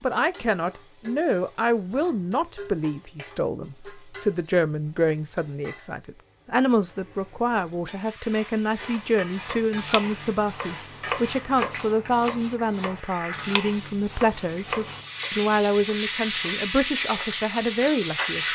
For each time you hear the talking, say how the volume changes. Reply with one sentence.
You can hear the talking from 0.0 to 18.4 s, at a steady volume.